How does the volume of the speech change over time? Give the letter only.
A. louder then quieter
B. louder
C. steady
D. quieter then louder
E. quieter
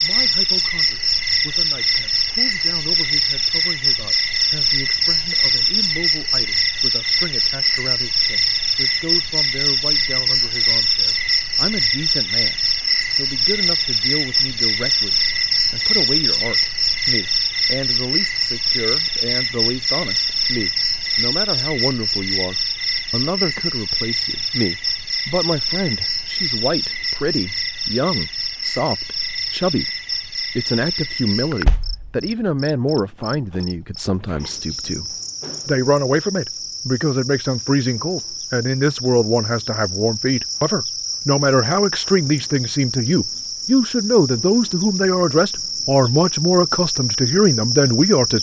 B.